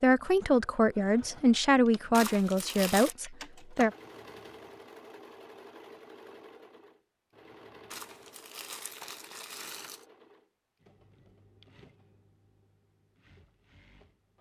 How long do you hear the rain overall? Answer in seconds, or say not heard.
not heard.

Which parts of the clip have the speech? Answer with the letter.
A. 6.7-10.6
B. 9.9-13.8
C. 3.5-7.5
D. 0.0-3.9
D.